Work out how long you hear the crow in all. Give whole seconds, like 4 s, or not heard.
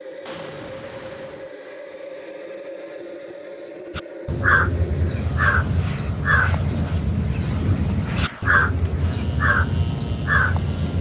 7 s.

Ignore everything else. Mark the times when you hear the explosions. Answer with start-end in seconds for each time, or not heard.
0.2-1.5.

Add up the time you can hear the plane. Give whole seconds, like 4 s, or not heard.
11 s.